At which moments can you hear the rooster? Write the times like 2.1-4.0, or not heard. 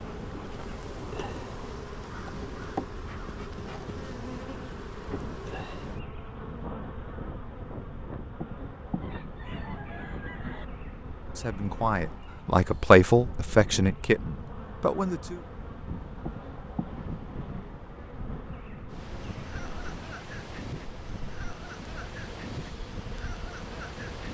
9.0-10.7.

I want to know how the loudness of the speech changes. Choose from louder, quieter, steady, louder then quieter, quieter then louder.
louder then quieter.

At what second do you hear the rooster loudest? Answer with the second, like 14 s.
10 s.